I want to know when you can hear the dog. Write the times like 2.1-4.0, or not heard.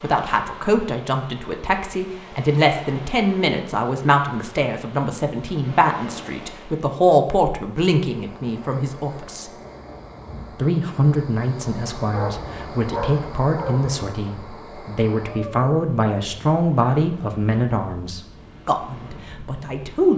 12.0-13.8.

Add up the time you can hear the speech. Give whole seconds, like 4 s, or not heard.
19 s.